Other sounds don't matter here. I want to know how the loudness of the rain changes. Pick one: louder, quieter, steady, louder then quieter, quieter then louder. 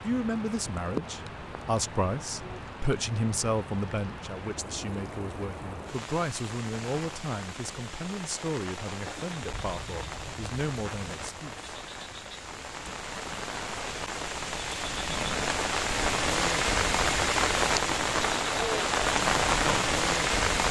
louder.